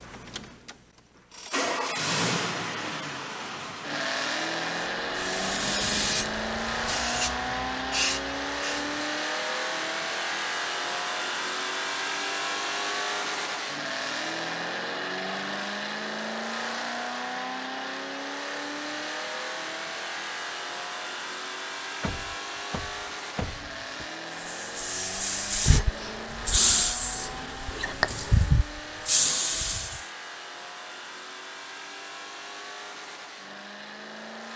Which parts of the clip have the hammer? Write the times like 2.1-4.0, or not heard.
not heard.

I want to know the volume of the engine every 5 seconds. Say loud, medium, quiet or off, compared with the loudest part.
loud, loud, loud, loud, medium, medium, medium.